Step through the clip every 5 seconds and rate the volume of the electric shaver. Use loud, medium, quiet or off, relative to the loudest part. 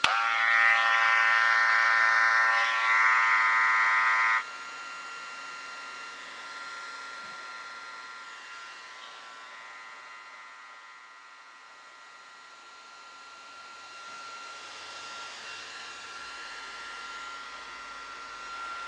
loud, quiet, quiet, quiet.